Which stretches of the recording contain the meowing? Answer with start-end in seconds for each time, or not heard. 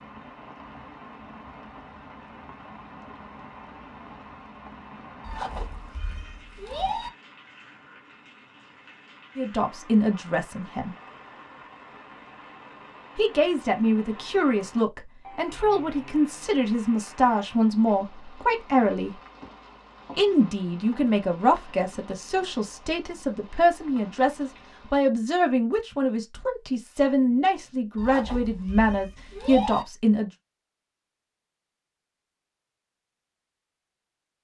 5.2-7.1, 27.9-29.9.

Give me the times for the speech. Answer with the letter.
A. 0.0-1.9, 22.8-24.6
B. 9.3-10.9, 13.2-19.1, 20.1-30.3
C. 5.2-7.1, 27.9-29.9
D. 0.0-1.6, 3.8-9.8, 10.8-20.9
B.